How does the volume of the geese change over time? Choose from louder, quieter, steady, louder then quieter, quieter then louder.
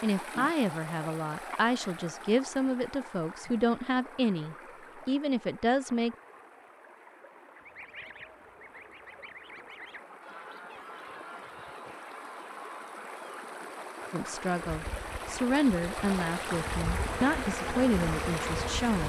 steady.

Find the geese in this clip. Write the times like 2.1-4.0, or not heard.
7.5-13.4.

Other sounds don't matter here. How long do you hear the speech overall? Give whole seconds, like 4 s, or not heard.
11 s.